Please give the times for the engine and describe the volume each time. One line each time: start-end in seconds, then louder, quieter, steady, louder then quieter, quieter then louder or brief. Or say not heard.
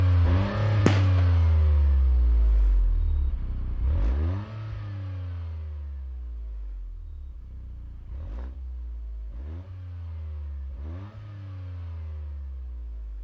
0.0-13.2 quieter then louder.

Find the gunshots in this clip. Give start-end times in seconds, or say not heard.
0.8-1.3.